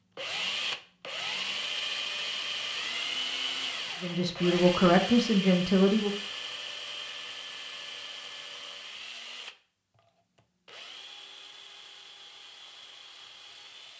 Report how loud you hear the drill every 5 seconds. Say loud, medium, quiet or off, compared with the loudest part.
loud, medium, quiet.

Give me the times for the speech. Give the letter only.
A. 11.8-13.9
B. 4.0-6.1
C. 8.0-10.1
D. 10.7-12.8
B.